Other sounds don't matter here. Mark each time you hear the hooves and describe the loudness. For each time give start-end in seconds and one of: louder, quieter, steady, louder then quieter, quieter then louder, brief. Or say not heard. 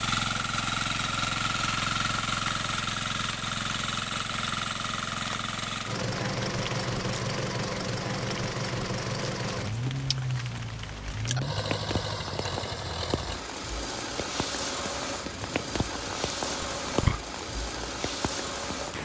not heard.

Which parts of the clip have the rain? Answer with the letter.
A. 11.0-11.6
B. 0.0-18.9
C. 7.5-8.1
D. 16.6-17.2
B.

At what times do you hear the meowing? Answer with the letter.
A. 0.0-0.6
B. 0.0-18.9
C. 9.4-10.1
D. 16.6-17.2
D.